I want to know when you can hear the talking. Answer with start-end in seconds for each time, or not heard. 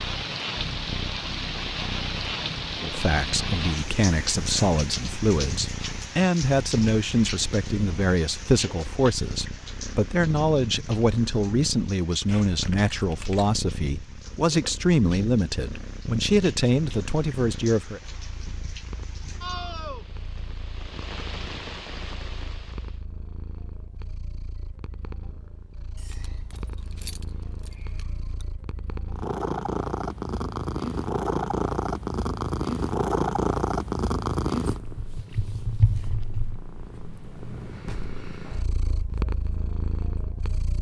2.8-18.0.